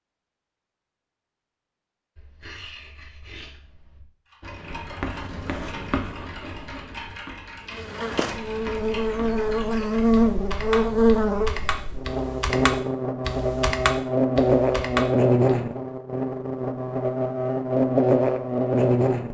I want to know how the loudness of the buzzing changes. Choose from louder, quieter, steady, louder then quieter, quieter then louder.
steady.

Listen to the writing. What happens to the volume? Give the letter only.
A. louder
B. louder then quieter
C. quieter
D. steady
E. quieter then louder
B.